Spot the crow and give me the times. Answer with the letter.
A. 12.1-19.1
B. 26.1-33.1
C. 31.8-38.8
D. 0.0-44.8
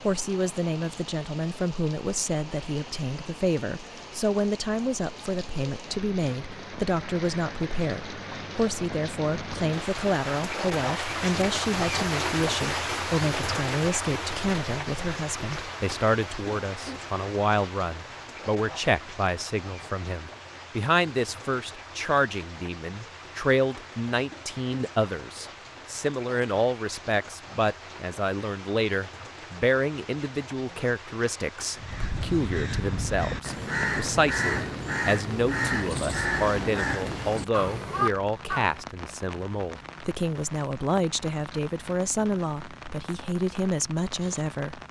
C.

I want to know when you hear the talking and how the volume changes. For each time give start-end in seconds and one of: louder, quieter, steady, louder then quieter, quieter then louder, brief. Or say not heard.
0.0-44.8 steady.